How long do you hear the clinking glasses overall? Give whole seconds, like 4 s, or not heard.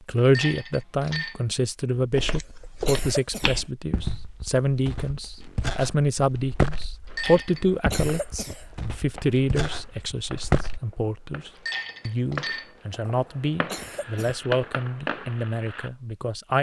3 s.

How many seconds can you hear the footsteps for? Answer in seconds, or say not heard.
9 s.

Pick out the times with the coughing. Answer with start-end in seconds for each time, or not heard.
2.6-3.6, 7.9-8.7, 13.7-14.4.